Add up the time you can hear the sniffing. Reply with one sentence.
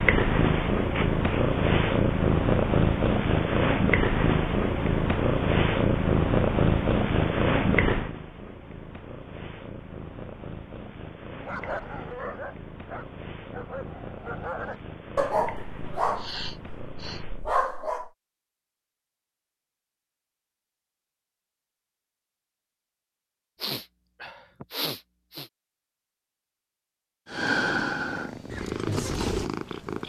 The sniffing can be heard for 4 seconds in total.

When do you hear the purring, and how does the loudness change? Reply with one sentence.
The purring can be heard from 0.0 to 17.5 s, getting quieter; and briefly from 27.2 to 30.0 s.